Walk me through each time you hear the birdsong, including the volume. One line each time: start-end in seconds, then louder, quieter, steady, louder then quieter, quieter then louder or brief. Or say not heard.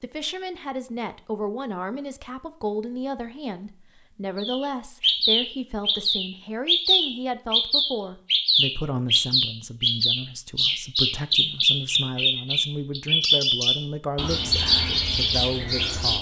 4.3-16.1 steady.